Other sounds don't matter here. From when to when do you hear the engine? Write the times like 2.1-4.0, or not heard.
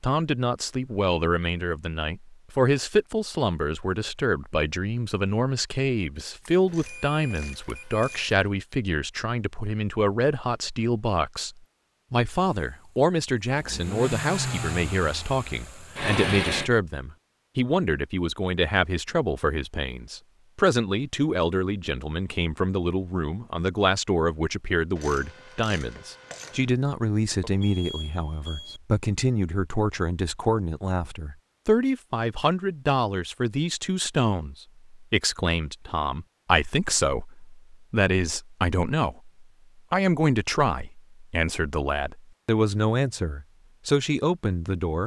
12.4-16.7.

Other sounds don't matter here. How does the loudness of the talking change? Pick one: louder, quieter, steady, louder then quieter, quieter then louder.
steady.